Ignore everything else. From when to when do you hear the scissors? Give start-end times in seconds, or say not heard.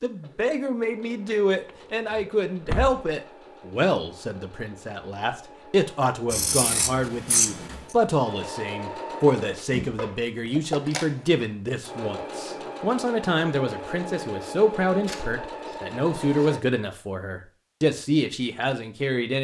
6.3-8.0, 15.0-16.9.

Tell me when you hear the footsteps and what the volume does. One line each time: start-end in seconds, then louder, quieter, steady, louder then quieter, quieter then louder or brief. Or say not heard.
not heard.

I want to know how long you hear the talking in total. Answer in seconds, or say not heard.
19 s.